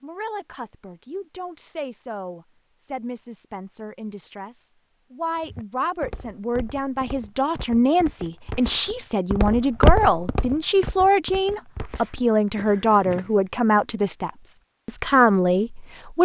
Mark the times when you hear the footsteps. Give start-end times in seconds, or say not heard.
5.4-13.3.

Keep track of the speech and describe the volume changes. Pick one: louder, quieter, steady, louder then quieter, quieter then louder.
louder.